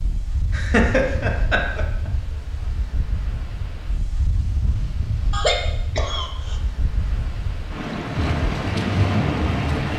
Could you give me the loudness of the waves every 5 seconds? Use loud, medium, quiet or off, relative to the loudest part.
medium, loud.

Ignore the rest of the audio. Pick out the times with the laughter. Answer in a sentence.
You can hear the laughter from 0.5 to 2.1 s and from 5.3 to 6.6 s.